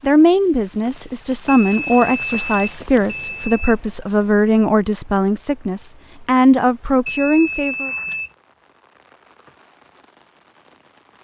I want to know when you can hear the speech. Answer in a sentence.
You can hear the speech from 0.0 to 7.9 s.